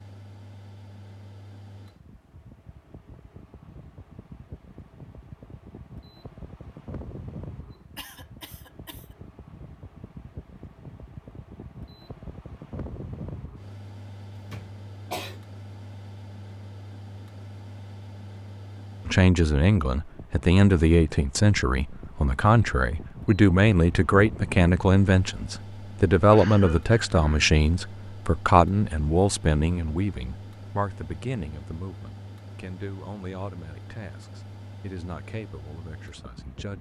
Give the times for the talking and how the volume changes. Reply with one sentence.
The talking can be heard from 19.1 to 36.7 s, getting quieter.